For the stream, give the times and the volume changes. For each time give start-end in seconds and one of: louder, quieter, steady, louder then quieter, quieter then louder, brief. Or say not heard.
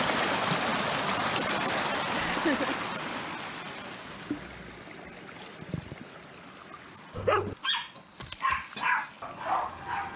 0.0-10.1 quieter.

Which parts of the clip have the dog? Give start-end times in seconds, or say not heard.
7.1-10.1.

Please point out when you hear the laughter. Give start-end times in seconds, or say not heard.
2.1-2.8.